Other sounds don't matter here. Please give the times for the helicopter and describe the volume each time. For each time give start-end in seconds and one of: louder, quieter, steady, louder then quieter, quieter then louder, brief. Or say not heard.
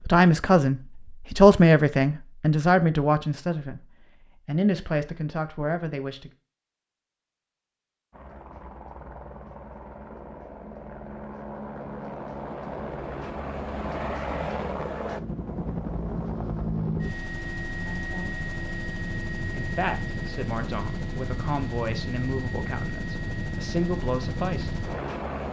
8.1-25.4 louder.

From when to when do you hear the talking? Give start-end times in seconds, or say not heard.
0.0-6.3, 17.8-18.4, 19.6-24.8.